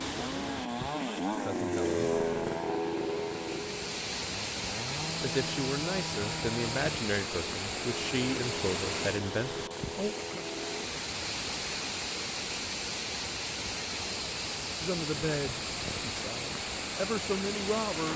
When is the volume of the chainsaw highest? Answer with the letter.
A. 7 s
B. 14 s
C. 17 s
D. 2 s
D.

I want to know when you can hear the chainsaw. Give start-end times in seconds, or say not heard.
0.0-10.9.